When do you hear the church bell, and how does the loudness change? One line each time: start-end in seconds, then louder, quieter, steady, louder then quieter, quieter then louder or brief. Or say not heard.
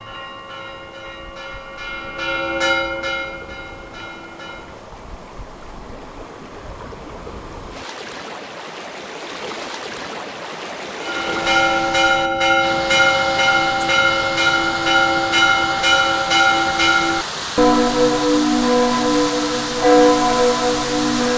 0.0-4.8 louder then quieter
11.0-21.3 steady.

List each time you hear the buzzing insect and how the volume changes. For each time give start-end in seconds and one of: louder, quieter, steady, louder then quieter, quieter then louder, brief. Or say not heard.
not heard.